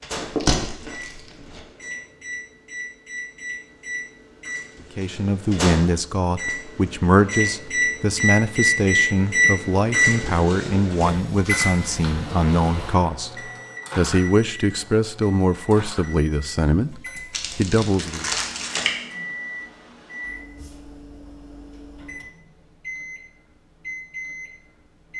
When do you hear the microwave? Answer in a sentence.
The microwave can be heard from 0.0 to 25.1 s.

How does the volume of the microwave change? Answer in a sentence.
The volume of the microwave goes up, then down.